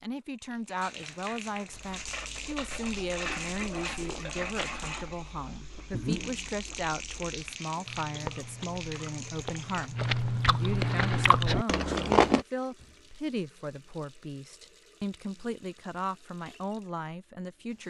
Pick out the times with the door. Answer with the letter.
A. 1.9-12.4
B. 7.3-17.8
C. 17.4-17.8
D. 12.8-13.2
D.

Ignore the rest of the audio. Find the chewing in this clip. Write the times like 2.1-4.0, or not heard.
1.9-12.4.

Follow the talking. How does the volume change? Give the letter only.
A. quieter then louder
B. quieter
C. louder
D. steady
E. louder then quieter
D.